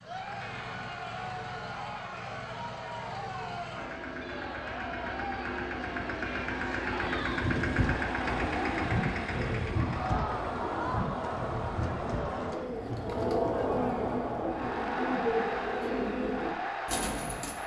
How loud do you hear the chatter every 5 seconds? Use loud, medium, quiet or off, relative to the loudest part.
medium, medium, loud, loud.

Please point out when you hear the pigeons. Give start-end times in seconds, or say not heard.
7.2-17.6.